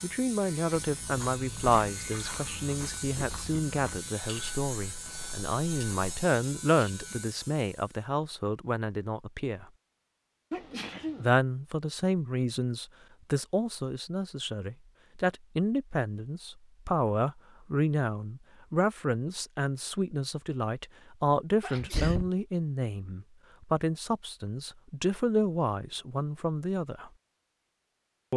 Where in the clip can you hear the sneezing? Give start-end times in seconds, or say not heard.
1.9-2.8, 10.5-11.3, 21.6-22.3.